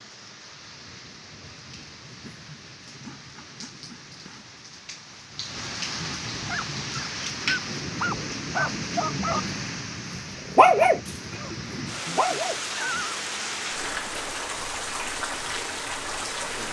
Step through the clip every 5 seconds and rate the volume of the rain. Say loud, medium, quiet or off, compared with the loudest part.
quiet, loud, loud, loud.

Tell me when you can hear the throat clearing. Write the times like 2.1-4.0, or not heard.
2.2-4.5, 11.3-12.5.